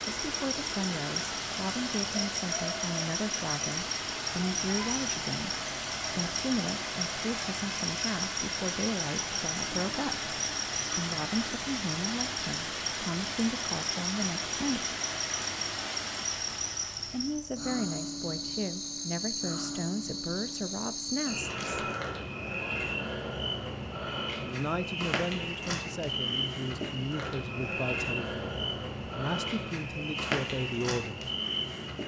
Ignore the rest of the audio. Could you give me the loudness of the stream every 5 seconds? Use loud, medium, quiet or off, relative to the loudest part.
loud, loud, loud, loud, off, off, off.